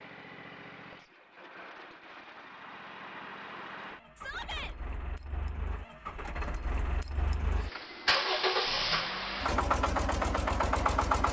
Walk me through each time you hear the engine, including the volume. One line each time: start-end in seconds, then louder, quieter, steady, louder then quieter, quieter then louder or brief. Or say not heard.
0.0-11.2 louder.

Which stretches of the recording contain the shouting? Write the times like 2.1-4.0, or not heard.
4.2-4.8.